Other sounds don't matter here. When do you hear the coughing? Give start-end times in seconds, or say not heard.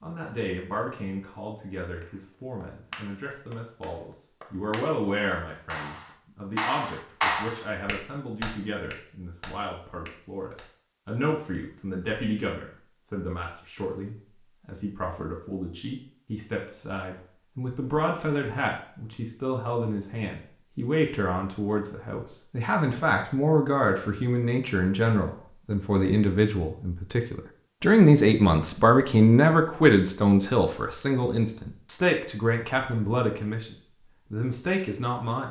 not heard.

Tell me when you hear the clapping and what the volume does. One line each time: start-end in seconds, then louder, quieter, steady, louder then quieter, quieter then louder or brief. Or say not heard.
2.0-10.7 louder then quieter.